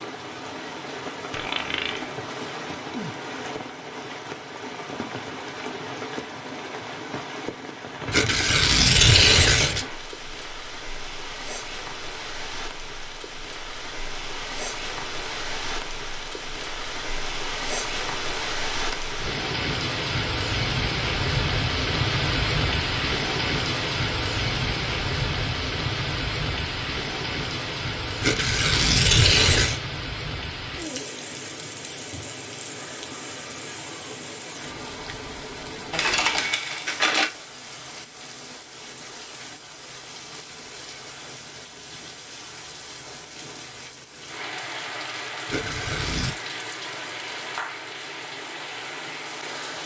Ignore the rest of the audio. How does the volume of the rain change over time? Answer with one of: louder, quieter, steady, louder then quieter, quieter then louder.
louder then quieter.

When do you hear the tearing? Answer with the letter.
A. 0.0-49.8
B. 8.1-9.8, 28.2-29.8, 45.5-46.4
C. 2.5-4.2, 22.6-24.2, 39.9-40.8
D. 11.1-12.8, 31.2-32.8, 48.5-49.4
B.